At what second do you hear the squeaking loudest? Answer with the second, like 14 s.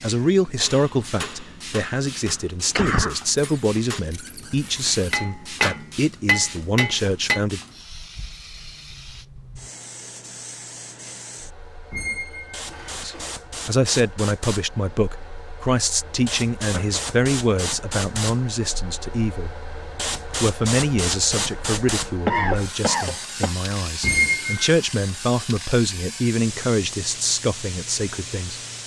24 s.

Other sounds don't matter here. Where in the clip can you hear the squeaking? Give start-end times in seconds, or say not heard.
3.4-5.2, 11.9-13.3, 24.0-24.8.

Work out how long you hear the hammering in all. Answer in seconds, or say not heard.
7 s.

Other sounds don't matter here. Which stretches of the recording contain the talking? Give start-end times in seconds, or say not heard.
0.0-7.6, 13.0-19.6, 20.4-28.6.